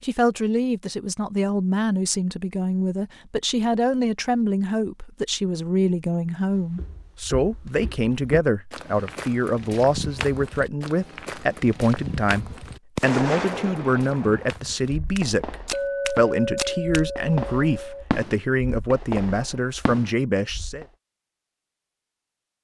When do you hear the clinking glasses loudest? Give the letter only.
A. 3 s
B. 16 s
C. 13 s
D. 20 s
B.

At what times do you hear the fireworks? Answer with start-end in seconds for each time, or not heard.
12.5-20.9.